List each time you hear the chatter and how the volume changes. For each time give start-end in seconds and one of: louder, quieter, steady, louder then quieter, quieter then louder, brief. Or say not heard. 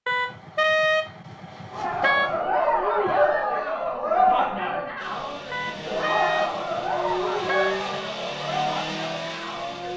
1.7-9.9 quieter.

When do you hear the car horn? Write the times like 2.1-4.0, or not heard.
0.1-2.4, 5.5-7.8.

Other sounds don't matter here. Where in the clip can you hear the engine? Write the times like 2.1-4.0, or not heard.
5.0-9.9.